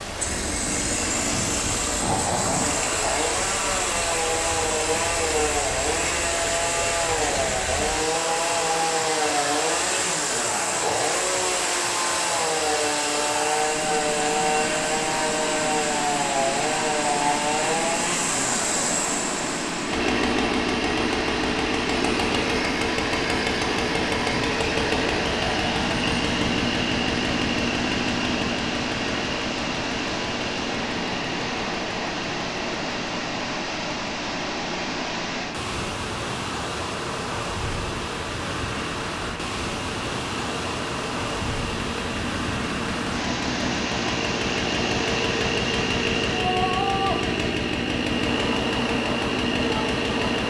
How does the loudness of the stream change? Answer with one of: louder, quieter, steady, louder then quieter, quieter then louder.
steady.